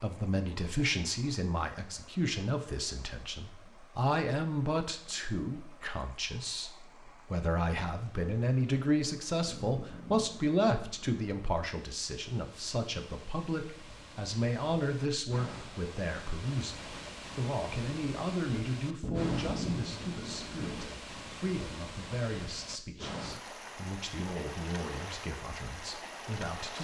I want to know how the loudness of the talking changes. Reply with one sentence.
The volume of the talking goes down.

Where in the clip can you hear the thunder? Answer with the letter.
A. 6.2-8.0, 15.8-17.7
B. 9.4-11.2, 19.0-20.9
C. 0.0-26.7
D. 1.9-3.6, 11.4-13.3
B.